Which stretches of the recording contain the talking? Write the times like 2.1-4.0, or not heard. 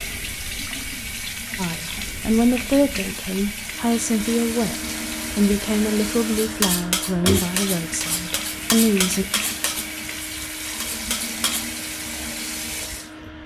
1.6-9.2.